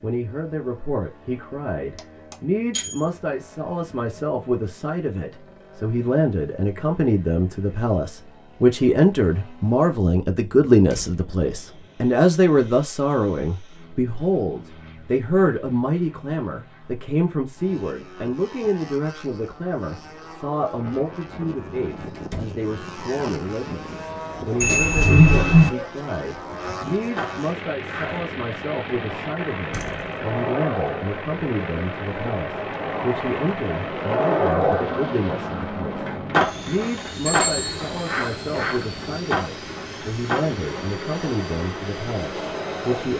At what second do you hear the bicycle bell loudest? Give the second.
25 s.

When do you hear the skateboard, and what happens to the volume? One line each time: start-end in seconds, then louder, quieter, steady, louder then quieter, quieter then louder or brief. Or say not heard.
26.9-43.1 louder then quieter.